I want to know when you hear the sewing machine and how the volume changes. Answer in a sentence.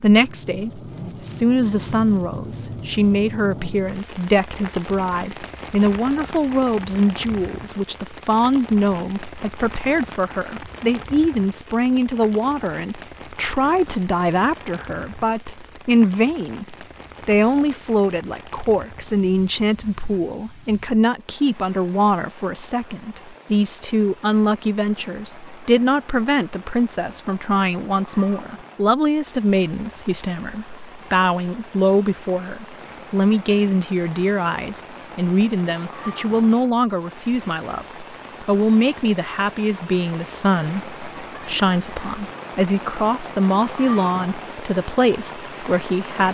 You can't hear the sewing machine here.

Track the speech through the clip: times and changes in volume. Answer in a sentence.
You can hear the speech from 0.0 to 46.2 s, at a steady volume.